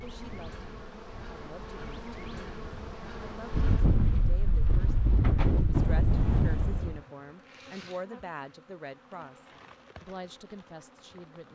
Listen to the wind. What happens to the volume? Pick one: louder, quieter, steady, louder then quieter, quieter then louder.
louder.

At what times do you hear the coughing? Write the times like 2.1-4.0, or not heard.
not heard.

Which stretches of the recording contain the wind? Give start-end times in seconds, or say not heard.
0.0-7.0.